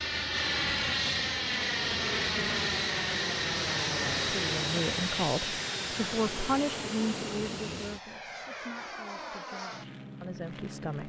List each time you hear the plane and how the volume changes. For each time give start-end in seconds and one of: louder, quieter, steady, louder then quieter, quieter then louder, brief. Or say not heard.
0.0-11.0 quieter.